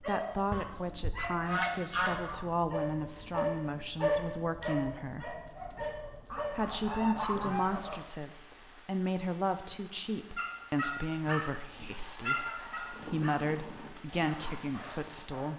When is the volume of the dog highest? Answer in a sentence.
The loudest moment of the dog is at 4 seconds.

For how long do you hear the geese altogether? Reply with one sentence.
You can hear the geese for 6 seconds altogether.